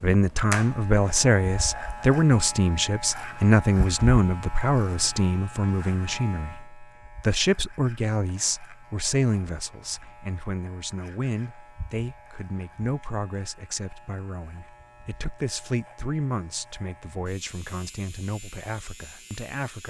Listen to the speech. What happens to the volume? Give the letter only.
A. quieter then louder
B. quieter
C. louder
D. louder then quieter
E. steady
B.